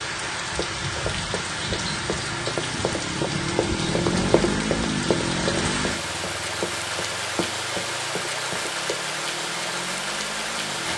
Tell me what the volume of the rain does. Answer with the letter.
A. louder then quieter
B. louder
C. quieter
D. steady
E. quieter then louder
D.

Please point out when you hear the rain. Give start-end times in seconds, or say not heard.
0.0-10.9.